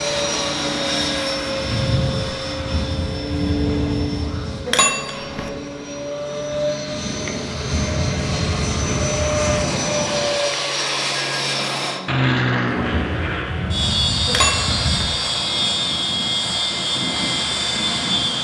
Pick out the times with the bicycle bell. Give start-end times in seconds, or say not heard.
4.7-5.5, 14.2-15.1.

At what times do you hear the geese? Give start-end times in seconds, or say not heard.
2.5-4.6, 7.5-9.6, 12.8-15.1.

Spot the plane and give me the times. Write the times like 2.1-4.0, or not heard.
0.0-18.3.